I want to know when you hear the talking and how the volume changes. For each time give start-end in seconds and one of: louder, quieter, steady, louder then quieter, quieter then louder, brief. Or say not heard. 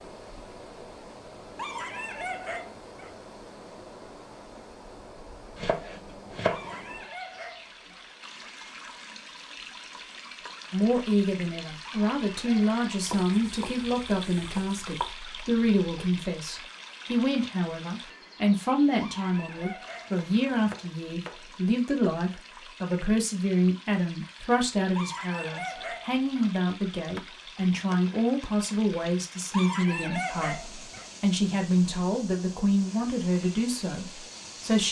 10.7-34.8 steady.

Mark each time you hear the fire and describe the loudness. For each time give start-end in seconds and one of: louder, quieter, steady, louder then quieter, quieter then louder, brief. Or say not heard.
not heard.